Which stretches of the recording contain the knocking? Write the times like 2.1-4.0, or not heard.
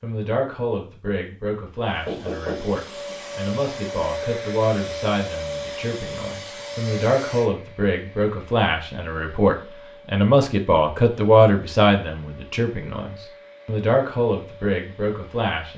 2.0-3.1.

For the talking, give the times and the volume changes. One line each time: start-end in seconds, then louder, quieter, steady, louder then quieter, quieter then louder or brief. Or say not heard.
0.0-15.7 louder then quieter.